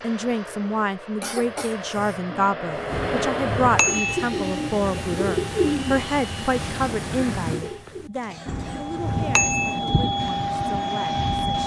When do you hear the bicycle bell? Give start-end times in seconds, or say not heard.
2.9-4.2, 8.4-9.8.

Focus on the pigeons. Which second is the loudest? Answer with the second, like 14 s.
6 s.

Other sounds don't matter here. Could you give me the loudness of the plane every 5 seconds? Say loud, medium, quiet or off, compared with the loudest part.
medium, medium, loud.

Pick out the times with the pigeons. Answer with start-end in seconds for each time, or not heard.
2.7-10.0.